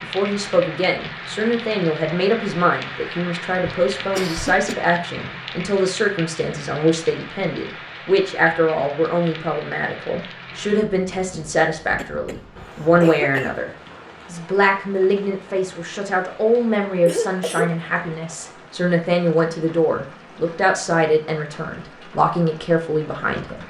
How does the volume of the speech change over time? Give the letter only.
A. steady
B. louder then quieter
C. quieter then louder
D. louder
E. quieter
A.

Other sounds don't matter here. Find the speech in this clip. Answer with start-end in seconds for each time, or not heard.
0.0-23.6.